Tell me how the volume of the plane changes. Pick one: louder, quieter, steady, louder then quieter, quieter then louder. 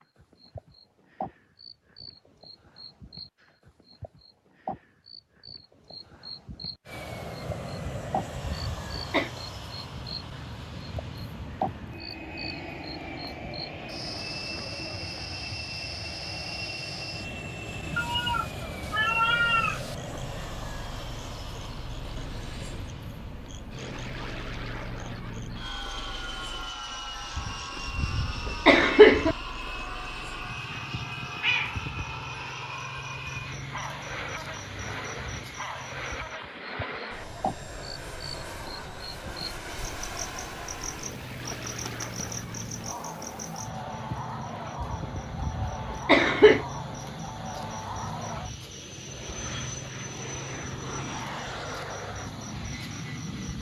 steady.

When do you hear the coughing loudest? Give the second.
29 s.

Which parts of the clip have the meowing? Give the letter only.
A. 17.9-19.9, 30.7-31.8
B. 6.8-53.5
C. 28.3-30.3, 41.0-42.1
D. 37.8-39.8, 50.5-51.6
A.